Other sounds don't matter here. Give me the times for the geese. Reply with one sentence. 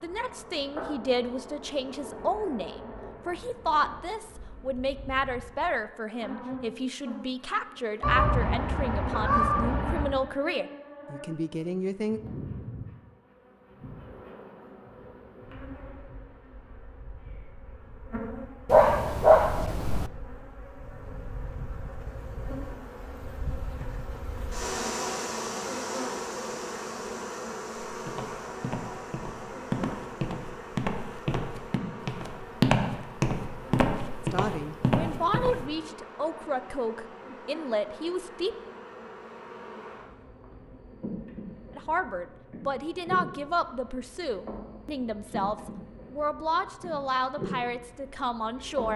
The geese can be heard from 8.0 to 10.1 s.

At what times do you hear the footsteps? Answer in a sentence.
You can hear the footsteps from 27.9 to 35.7 s.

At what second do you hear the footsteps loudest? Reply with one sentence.
The volume of the footsteps peaks at 33 seconds.